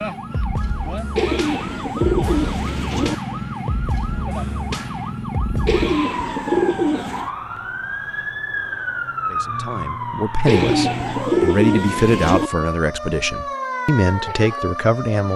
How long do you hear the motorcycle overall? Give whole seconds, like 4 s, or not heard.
not heard.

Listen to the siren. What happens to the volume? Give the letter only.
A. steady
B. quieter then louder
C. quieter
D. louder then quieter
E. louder
A.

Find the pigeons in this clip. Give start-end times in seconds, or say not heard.
1.1-3.1, 5.7-7.3, 10.4-12.5.